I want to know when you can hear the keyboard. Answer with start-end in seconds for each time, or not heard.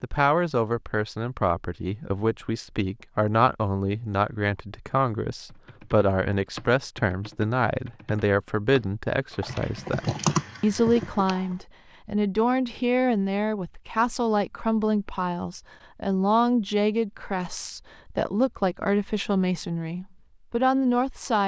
5.5-11.6.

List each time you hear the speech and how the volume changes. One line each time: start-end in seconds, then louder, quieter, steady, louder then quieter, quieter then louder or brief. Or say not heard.
0.0-21.4 steady.